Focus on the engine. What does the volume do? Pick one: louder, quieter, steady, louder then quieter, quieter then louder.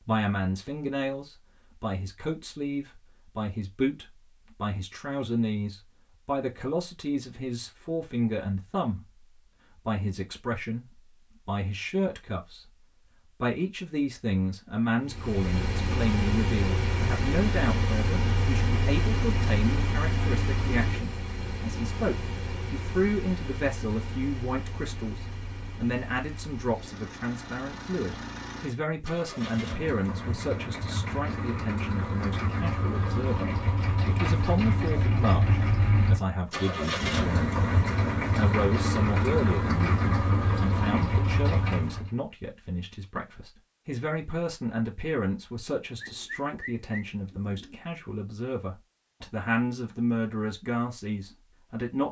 quieter then louder.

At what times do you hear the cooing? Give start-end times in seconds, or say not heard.
46.0-47.8.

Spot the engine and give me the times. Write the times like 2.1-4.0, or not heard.
15.0-42.1.